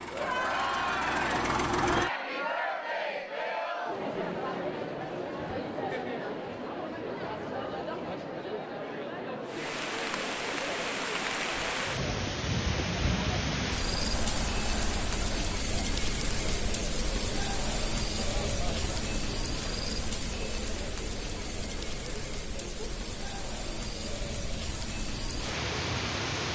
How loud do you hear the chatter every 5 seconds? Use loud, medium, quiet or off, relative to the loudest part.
loud, loud, medium, medium, quiet, off.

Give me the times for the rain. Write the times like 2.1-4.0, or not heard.
9.4-26.5.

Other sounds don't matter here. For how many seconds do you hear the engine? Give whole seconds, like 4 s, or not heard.
2 s.